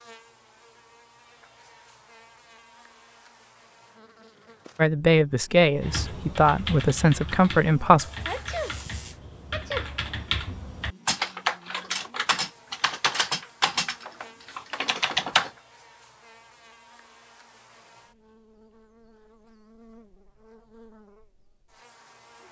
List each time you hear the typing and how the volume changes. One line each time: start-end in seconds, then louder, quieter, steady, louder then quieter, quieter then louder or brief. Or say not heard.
5.8-15.5 louder.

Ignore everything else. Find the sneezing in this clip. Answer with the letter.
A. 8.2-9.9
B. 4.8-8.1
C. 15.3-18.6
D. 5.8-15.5
A.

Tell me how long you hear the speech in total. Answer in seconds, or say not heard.
3 s.